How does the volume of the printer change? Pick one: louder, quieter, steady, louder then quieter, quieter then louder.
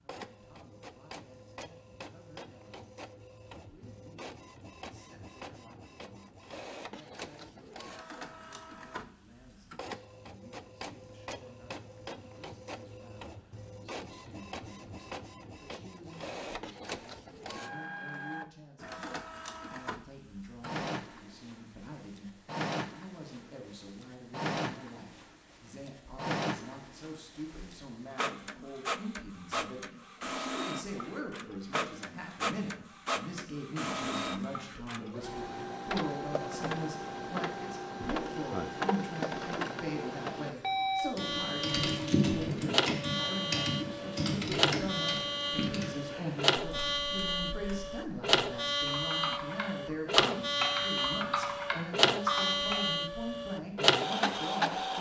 louder.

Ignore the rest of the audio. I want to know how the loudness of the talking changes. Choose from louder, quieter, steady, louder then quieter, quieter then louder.
louder.